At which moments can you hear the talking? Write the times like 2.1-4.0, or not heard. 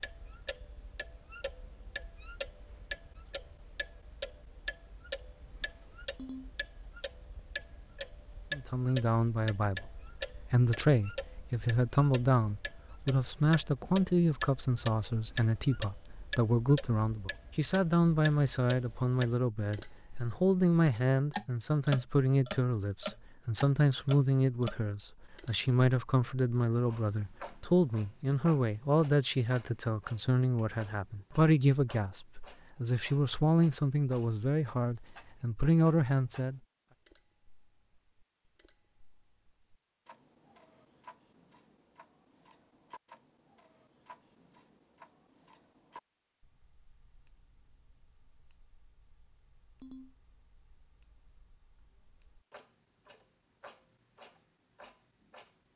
8.5-36.6.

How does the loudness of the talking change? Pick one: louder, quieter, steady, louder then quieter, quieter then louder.
steady.